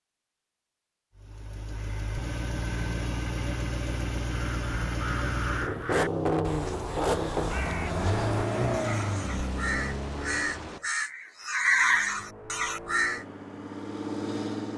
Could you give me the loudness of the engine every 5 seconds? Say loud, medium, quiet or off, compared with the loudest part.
medium, loud, medium.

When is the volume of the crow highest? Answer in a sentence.
The volume of the crow peaks at 12 seconds.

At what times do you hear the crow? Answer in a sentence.
The crow can be heard from 4.2 to 13.2 s.